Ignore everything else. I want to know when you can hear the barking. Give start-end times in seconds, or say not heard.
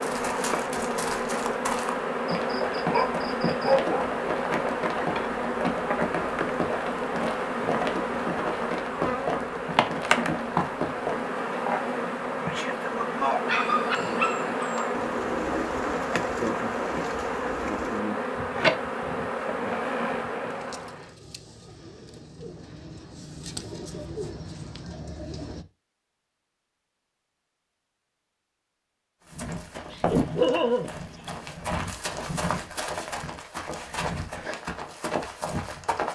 2.3-4.2, 13.4-14.8, 29.8-31.4.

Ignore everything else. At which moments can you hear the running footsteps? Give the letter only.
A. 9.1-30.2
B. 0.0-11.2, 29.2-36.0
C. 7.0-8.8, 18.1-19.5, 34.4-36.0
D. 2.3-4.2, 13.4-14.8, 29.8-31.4
B.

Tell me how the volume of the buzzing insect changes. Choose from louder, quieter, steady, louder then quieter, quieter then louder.
steady.